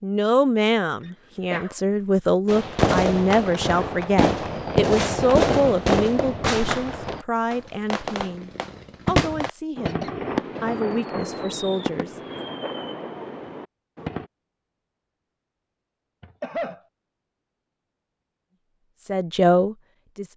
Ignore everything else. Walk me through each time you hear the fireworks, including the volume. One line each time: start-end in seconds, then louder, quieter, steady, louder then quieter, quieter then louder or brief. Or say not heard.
2.5-14.3 quieter.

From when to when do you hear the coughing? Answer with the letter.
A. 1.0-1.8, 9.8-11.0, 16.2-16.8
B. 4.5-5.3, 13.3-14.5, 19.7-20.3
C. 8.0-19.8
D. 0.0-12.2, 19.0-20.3
A.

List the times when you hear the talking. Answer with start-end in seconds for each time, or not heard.
0.0-12.2, 19.0-20.3.